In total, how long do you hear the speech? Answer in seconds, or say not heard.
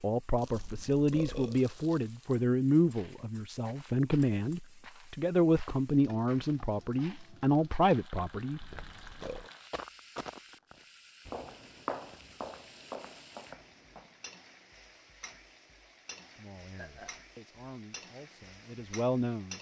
12 s.